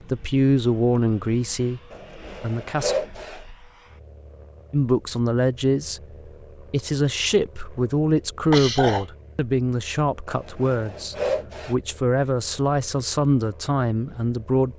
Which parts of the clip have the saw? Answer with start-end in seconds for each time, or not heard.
1.9-3.5, 10.2-11.8.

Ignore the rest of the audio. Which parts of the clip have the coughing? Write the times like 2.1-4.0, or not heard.
8.5-9.1.